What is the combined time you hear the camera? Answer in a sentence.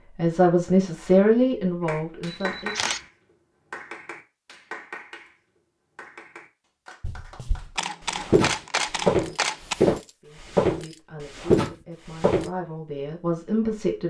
You can hear the camera for 3 seconds altogether.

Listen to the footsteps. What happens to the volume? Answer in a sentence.
The loudness of the footsteps goes up.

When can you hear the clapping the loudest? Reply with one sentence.
The volume of the clapping peaks at 3 seconds.